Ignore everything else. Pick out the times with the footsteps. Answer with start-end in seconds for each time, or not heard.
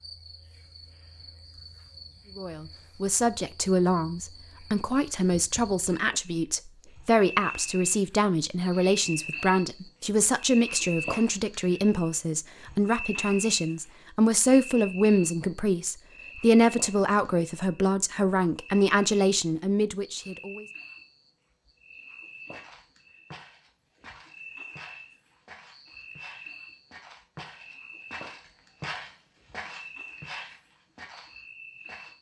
22.5-32.1.